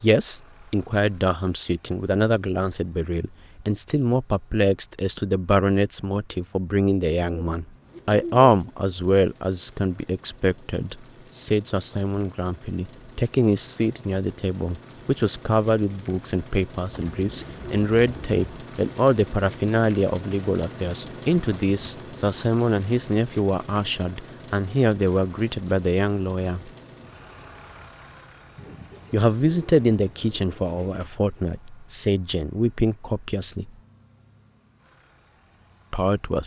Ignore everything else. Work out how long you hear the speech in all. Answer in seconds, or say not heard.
32 s.